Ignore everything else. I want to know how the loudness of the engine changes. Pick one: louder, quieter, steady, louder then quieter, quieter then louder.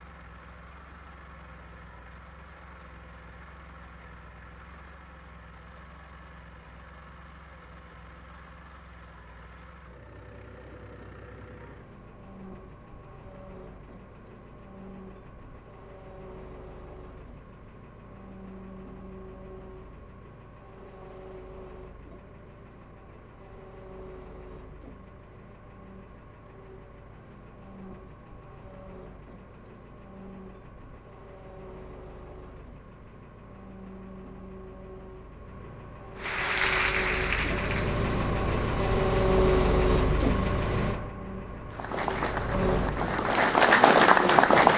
louder.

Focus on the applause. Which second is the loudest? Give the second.
44 s.